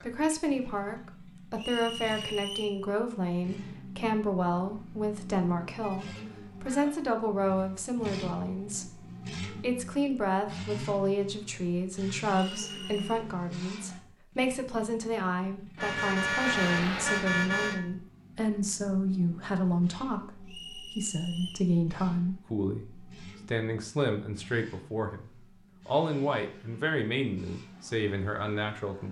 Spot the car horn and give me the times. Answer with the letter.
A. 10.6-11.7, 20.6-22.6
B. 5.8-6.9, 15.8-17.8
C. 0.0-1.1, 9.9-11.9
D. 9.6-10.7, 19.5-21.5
B.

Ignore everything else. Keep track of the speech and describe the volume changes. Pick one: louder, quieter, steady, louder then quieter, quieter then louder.
steady.